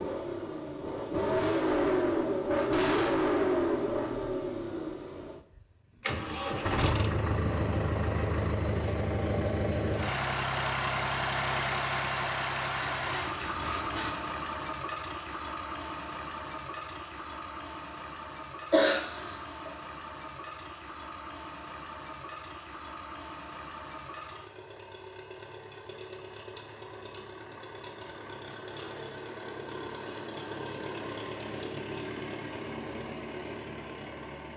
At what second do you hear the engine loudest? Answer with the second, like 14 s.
3 s.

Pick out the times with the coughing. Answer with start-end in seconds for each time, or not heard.
18.7-19.7.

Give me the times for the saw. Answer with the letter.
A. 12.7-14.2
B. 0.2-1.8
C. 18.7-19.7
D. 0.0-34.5
A.